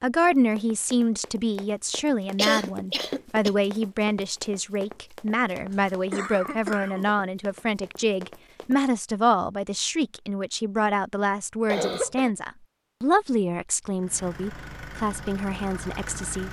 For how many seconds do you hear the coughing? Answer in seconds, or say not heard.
3 s.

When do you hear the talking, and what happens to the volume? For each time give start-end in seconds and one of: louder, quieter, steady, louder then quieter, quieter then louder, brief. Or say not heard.
0.0-16.4 steady.